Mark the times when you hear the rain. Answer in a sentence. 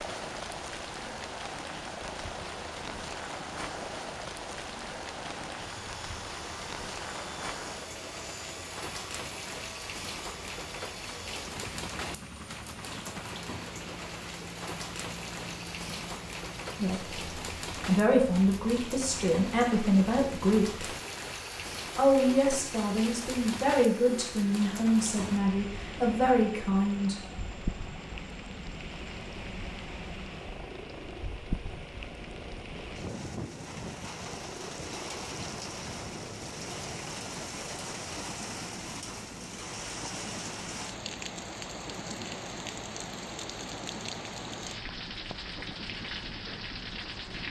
You can hear the rain from 0.0 to 47.4 s.